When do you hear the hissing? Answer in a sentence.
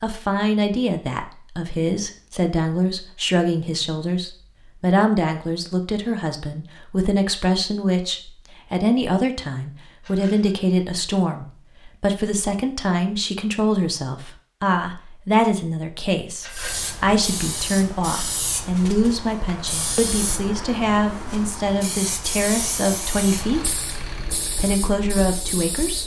You can hear the hissing from 16.5 to 26.0 s.